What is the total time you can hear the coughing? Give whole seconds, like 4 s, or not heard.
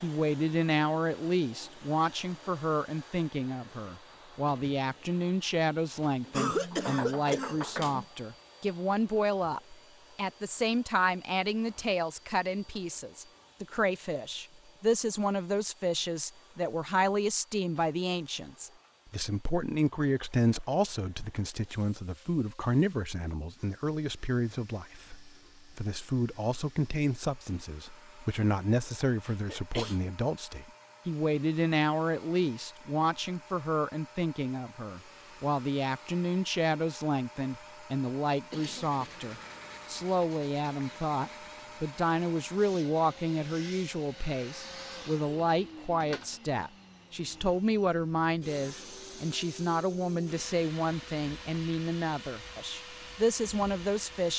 3 s.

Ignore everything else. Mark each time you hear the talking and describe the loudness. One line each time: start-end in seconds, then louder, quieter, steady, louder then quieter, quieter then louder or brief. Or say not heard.
0.0-54.3 steady.